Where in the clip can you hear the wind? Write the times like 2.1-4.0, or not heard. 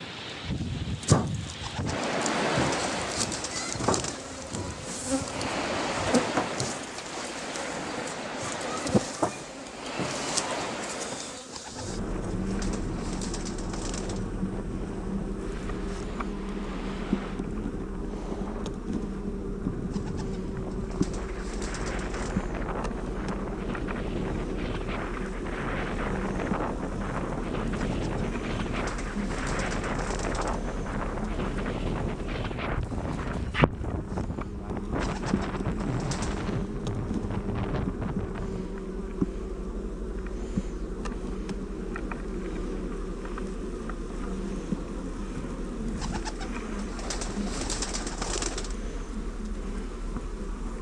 0.0-38.7.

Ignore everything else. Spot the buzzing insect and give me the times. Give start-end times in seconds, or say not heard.
0.0-50.7.